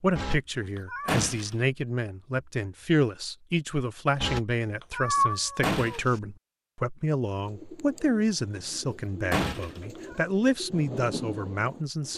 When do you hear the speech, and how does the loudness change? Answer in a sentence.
The speech can be heard from 0.0 to 12.1 s, at a steady volume.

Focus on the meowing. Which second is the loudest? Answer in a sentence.
The volume of the meowing peaks at 5 seconds.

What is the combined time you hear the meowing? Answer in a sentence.
You can hear the meowing for 4 seconds altogether.